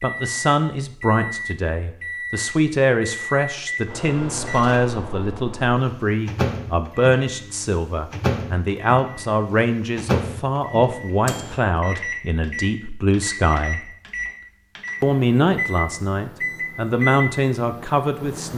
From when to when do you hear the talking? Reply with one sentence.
The talking can be heard from 0.0 to 13.9 s and from 15.0 to 18.5 s.